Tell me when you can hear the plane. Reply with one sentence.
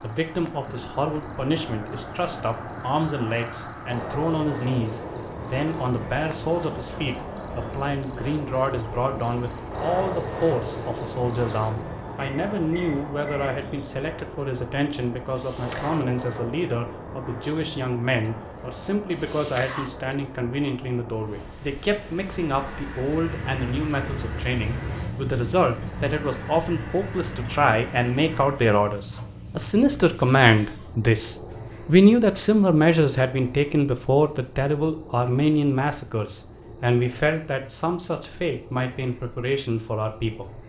You can hear the plane from 0.0 to 28.7 s.